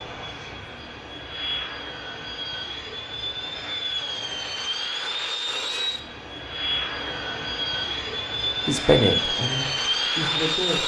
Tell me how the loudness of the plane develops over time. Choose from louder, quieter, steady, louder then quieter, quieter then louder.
louder.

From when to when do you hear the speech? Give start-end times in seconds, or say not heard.
8.7-10.8.